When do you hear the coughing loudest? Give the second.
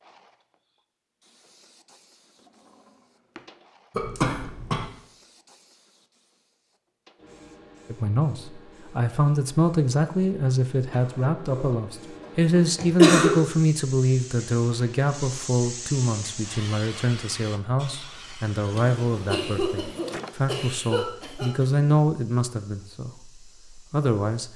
13 s.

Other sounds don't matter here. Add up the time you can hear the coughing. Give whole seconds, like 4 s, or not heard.
4 s.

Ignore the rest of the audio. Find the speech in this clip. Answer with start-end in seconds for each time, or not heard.
7.9-24.5.